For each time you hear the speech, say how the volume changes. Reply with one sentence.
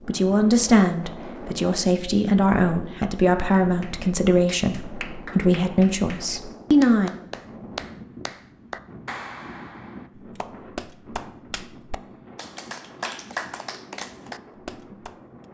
The speech can be heard from 0.1 to 7.1 s, at a steady volume.